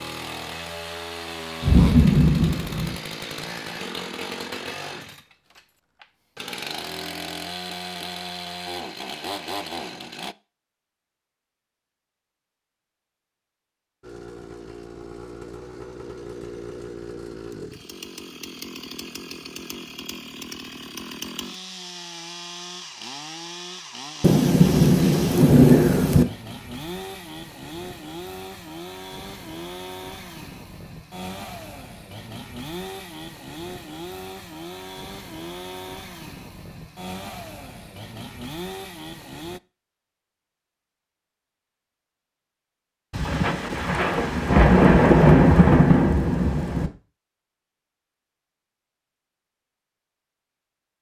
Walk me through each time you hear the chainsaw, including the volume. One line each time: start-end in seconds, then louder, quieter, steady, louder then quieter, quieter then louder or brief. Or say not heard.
0.0-10.3 steady
14.0-39.6 steady.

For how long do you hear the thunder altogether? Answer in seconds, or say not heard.
7 s.